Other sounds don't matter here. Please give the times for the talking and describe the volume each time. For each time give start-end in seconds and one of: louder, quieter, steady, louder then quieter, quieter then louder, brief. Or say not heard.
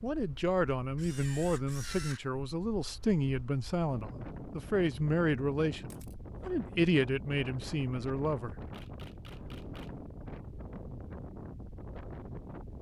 0.0-8.6 steady.